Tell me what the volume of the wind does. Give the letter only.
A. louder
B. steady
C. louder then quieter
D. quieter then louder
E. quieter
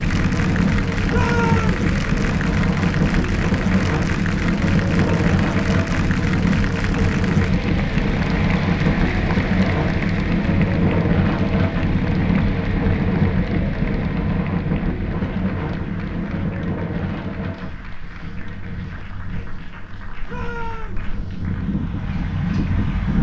E.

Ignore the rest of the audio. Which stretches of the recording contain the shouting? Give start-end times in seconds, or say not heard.
1.1-1.9, 20.2-21.1.